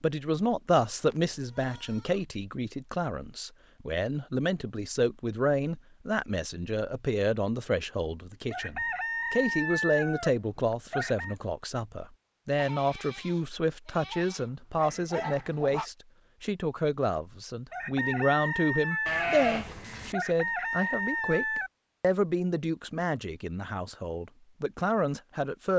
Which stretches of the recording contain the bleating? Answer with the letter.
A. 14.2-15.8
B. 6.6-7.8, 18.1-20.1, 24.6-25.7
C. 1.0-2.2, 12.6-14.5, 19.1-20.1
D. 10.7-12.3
C.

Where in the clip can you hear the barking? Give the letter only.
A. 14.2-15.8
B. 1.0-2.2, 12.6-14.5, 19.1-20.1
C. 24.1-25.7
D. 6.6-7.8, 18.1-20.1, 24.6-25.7
A.